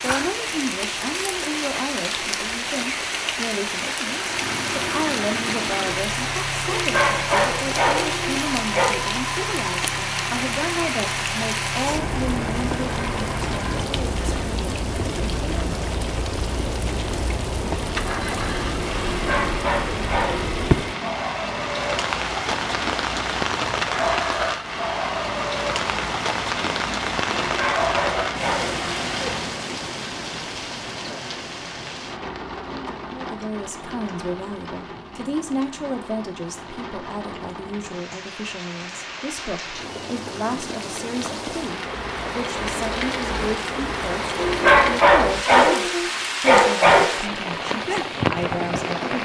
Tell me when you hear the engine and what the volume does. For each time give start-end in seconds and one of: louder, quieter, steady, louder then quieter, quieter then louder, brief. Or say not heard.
4.2-29.6 steady.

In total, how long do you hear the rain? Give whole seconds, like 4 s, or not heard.
49 s.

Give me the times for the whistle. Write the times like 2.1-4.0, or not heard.
not heard.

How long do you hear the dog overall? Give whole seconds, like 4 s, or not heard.
8 s.